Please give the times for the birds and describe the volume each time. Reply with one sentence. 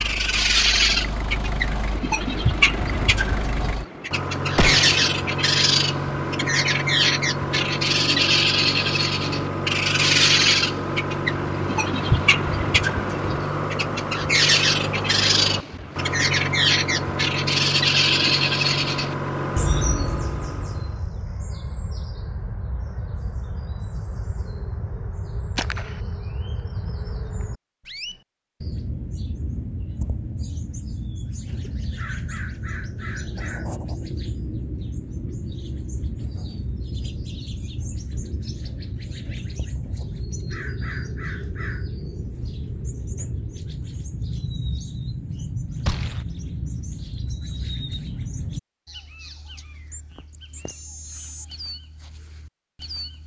You can hear the birds from 0.0 to 53.2 s, getting quieter.